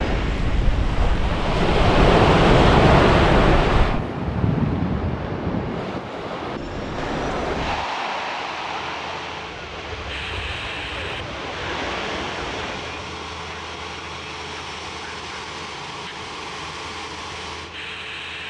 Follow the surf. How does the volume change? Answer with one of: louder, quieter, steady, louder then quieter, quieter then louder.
quieter.